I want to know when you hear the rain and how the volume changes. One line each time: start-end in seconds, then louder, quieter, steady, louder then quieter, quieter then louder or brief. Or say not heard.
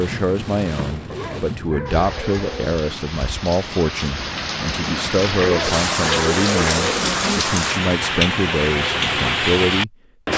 0.0-10.3 louder.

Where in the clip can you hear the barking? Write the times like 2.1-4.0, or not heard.
1.1-2.8, 5.4-7.4.